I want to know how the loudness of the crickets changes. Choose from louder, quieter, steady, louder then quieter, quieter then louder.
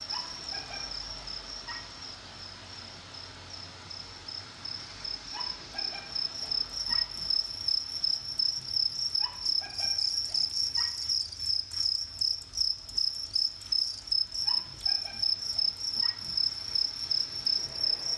louder.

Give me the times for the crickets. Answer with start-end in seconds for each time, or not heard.
0.0-18.1.